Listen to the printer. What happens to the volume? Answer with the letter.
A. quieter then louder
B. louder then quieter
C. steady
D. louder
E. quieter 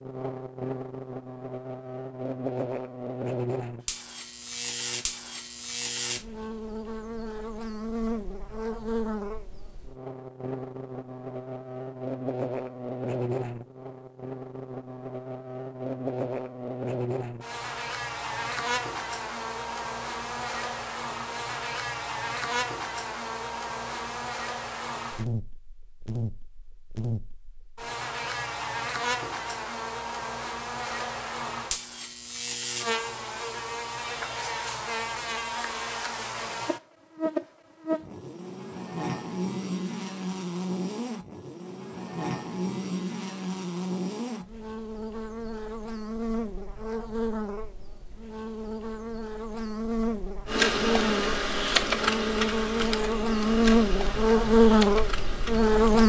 E.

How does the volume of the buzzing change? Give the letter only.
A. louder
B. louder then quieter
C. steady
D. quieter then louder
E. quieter
A.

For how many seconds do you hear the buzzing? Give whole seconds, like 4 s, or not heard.
56 s.